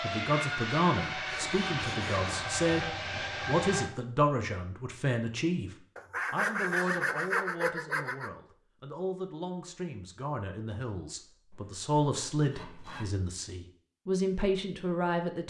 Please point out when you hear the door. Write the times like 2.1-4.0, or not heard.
not heard.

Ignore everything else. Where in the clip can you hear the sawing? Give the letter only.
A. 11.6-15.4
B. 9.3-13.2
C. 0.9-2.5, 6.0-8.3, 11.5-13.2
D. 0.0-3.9
C.